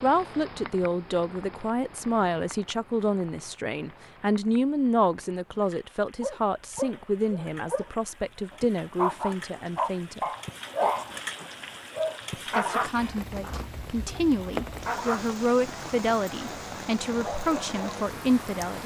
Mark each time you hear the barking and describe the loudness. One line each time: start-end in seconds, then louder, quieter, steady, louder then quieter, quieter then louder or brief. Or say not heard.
6.2-17.9 louder then quieter.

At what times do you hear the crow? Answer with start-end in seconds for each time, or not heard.
not heard.